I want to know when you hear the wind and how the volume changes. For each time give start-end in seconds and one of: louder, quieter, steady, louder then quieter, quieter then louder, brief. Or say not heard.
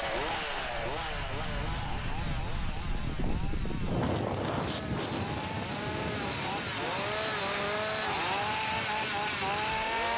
0.0-10.1 louder then quieter.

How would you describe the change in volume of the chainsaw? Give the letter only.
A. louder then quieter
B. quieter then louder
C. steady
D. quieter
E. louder
B.